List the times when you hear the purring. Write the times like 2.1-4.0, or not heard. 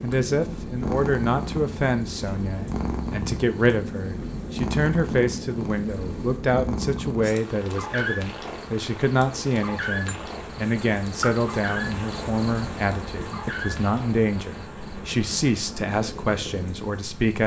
0.0-17.4.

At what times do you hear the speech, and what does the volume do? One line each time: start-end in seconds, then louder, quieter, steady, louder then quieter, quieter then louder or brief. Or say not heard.
0.0-17.4 steady.